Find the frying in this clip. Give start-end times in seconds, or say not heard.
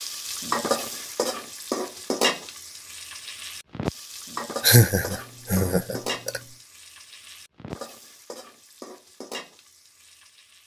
0.0-10.6.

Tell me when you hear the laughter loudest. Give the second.
5 s.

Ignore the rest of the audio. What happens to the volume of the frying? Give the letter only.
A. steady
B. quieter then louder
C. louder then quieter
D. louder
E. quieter
E.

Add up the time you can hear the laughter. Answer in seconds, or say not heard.
2 s.